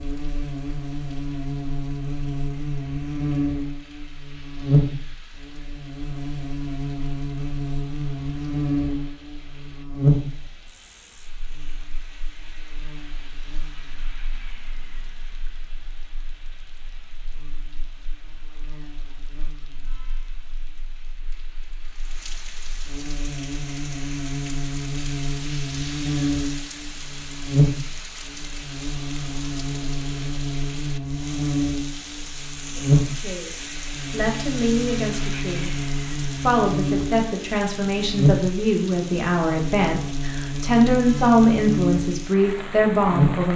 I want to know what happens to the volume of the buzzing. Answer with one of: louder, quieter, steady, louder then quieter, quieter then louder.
quieter then louder.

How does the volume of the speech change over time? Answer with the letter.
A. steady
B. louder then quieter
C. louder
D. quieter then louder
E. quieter
C.